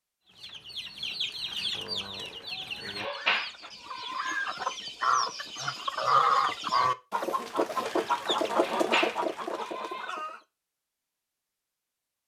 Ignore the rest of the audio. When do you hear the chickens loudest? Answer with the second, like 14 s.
6 s.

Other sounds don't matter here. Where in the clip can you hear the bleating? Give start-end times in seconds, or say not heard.
3.0-4.4, 8.6-10.1.